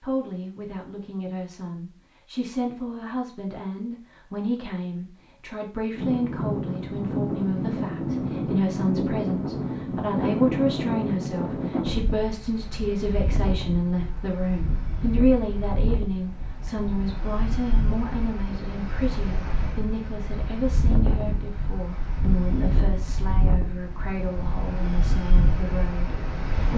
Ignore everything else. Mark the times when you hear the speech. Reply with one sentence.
You can hear the speech from 0.0 to 26.7 s.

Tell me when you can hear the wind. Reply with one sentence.
You can hear the wind from 6.0 to 26.7 s.